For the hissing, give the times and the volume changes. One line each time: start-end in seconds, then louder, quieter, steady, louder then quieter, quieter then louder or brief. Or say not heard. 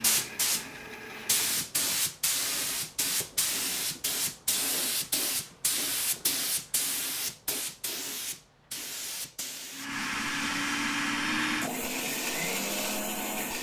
0.0-13.5 quieter.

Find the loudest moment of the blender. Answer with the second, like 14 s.
11 s.